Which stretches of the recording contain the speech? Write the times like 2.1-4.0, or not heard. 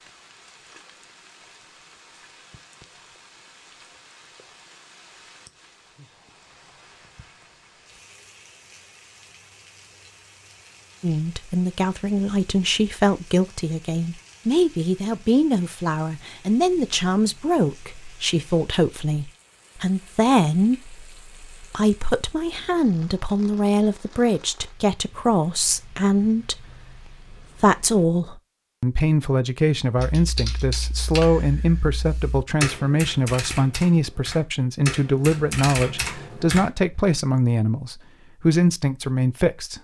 11.0-39.7.